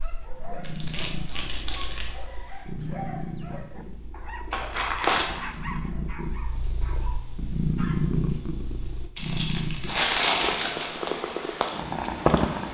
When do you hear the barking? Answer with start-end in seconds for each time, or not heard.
0.0-8.0.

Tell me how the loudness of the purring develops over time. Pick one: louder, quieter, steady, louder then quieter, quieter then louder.
louder.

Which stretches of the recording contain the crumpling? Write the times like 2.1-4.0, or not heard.
0.6-2.1, 4.5-5.8, 9.2-10.9.